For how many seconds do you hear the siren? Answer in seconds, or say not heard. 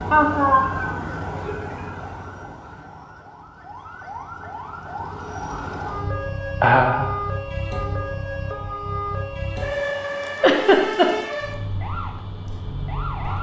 13 s.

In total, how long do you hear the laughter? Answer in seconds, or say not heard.
3 s.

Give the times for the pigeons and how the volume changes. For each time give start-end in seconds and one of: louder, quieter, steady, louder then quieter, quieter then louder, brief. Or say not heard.
not heard.